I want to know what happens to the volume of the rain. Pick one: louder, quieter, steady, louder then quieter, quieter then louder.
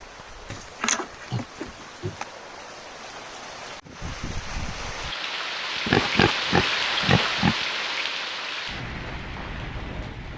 louder then quieter.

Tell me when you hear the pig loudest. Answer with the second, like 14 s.
6 s.